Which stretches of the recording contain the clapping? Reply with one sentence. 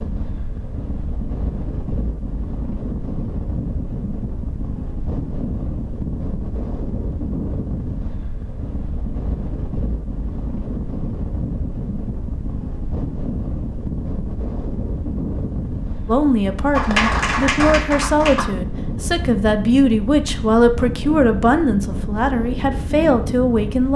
You can hear the clapping from 16.7 to 18.4 s.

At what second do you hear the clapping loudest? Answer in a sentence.
The volume of the clapping peaks at 17 seconds.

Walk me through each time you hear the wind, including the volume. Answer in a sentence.
The wind can be heard from 0.0 to 23.9 s, at a steady volume.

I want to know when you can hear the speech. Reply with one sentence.
The speech can be heard from 16.1 to 23.9 s.